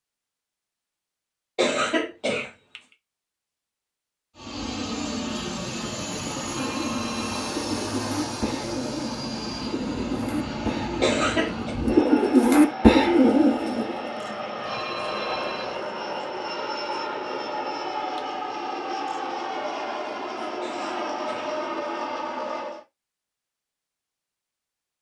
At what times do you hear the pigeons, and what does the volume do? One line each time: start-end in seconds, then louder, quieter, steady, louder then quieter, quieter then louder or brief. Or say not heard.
6.1-14.1 louder.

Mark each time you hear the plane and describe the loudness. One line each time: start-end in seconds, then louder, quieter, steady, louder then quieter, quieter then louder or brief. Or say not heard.
4.3-22.9 steady.